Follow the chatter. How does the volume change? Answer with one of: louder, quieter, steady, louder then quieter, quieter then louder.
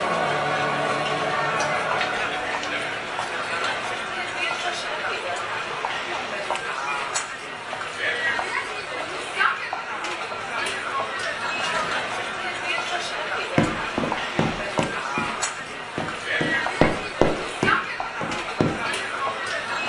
steady.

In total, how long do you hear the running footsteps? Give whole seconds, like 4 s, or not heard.
5 s.